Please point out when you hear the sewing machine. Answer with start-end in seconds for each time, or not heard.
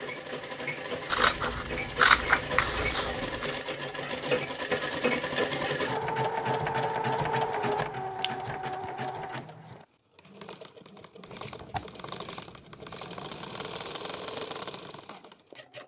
0.0-15.8.